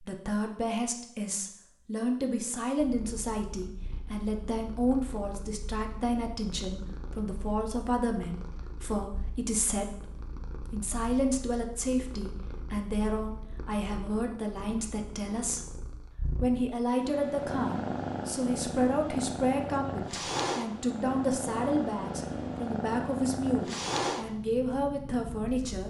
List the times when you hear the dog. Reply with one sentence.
You can't hear the dog here.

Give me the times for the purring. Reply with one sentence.
The purring can be heard from 2.8 to 25.8 s.